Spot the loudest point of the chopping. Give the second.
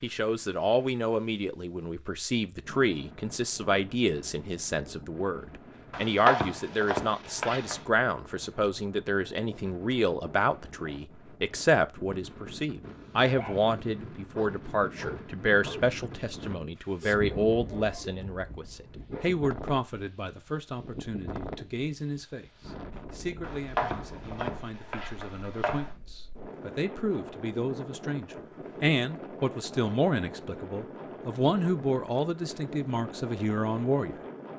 6 s.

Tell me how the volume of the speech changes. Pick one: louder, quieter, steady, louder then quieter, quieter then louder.
quieter then louder.